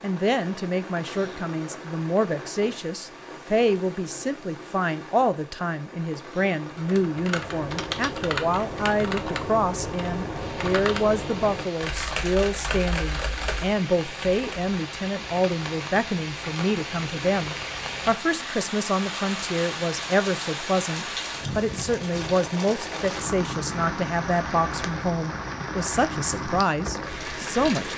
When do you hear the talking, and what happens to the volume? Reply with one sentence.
The talking can be heard from 0.0 to 27.9 s, at a steady volume.